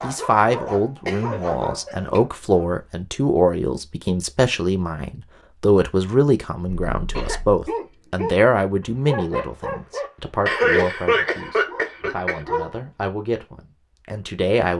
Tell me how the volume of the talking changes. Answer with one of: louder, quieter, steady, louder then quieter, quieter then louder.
quieter.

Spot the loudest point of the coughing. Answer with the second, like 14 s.
11 s.